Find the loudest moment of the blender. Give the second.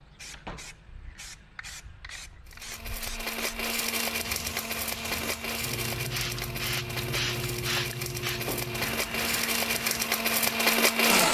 11 s.